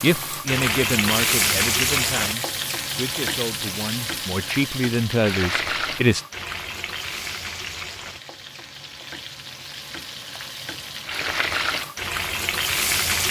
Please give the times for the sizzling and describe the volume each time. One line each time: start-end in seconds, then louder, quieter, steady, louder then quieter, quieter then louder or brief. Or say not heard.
0.0-13.2 quieter then louder.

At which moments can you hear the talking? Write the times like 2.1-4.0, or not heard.
0.0-6.2.